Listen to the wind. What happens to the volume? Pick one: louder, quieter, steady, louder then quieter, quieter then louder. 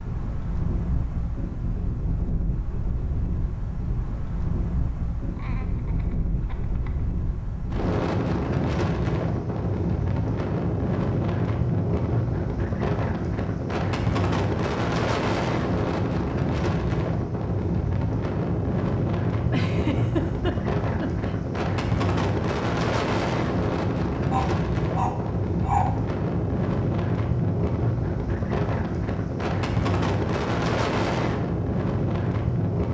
louder.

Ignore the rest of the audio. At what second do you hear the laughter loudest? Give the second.
20 s.